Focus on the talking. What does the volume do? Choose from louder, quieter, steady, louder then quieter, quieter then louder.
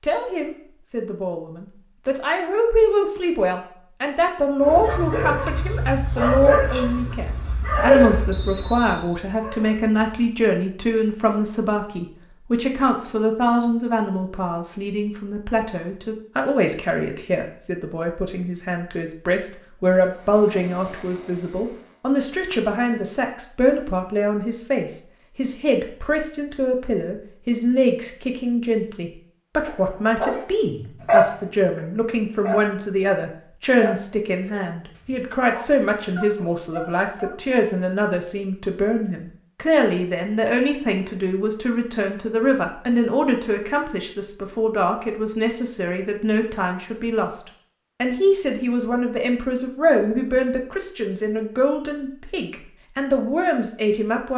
steady.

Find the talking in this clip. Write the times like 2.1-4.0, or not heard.
0.0-47.4, 48.0-54.3.